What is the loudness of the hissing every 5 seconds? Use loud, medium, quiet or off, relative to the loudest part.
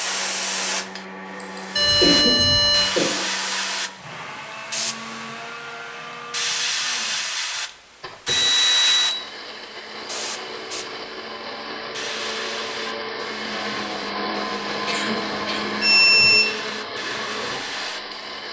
loud, loud, medium, medium.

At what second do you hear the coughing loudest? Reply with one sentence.
The loudest moment of the coughing is at 2 seconds.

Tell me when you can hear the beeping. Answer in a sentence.
You can hear the beeping from 1.8 to 2.9 s, from 8.2 to 9.2 s and from 15.8 to 16.5 s.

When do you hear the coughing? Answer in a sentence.
The coughing can be heard from 1.4 to 3.2 s and from 14.8 to 16.2 s.